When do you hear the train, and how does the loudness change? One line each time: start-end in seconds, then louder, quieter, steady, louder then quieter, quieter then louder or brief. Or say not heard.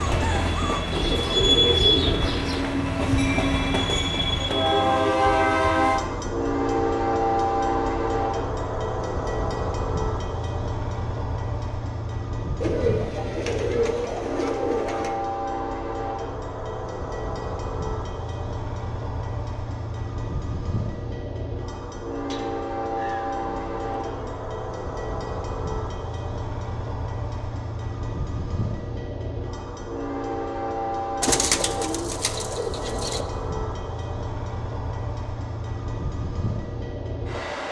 0.0-37.6 quieter.